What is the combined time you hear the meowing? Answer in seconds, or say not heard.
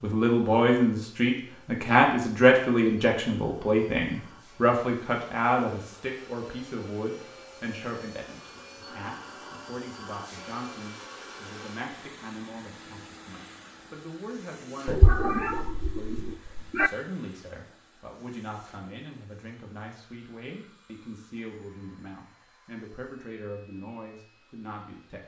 2 s.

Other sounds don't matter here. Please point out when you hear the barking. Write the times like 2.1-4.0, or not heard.
not heard.